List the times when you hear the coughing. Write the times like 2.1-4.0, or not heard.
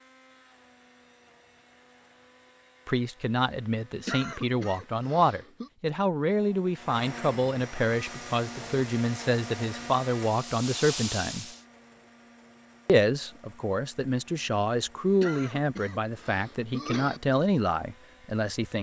4.0-5.7, 15.2-17.2.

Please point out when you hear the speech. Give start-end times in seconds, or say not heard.
2.9-11.4, 12.8-18.7.